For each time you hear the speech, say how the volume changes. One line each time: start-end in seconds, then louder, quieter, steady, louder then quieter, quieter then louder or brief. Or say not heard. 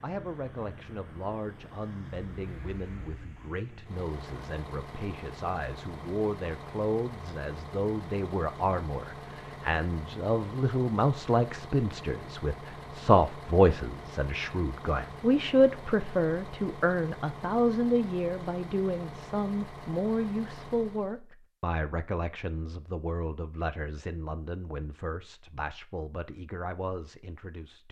0.0-27.8 louder then quieter.